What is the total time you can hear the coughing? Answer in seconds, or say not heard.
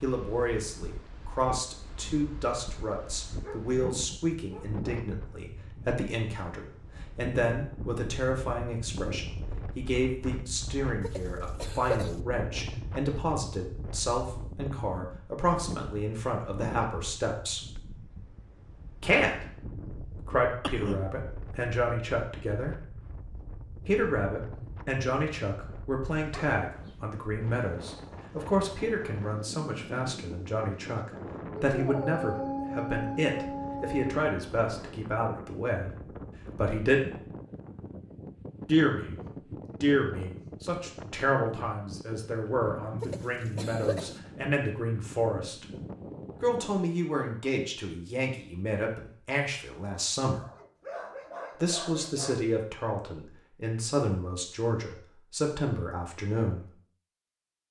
3 s.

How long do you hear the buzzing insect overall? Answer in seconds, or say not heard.
not heard.